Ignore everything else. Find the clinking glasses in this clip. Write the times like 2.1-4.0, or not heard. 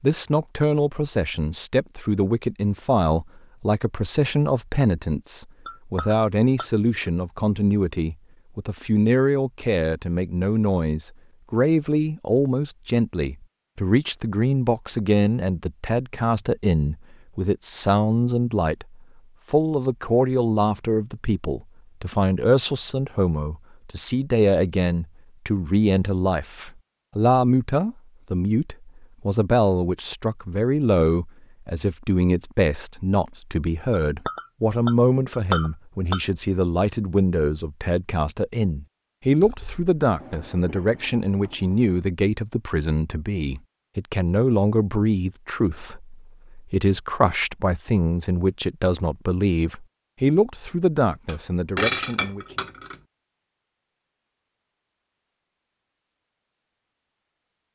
5.7-6.7, 33.9-36.2, 51.2-53.0.